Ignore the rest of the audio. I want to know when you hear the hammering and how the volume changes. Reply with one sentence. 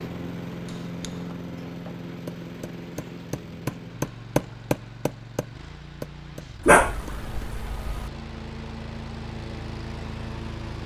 You can hear the hammering from 0.7 to 7.5 s, getting louder then quieter.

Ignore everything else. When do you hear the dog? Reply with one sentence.
You can hear the dog from 6.7 to 8.1 s.